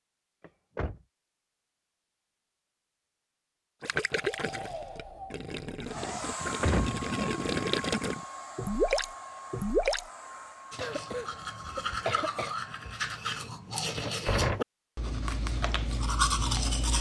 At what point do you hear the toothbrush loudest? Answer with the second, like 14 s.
16 s.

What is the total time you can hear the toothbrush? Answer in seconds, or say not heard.
6 s.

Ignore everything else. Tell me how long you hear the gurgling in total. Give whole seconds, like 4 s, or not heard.
6 s.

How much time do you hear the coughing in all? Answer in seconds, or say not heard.
2 s.